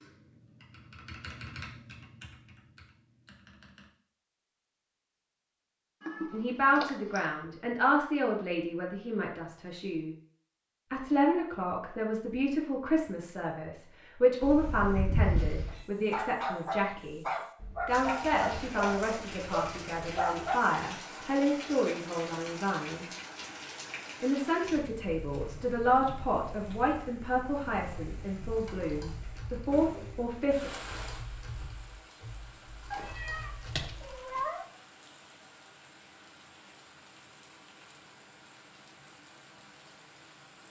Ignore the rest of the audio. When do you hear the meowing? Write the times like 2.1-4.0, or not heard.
6.0-7.2, 14.4-15.8, 32.9-34.6.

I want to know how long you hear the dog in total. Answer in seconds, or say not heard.
5 s.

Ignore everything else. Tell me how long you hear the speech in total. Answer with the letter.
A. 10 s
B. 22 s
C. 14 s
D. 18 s
B.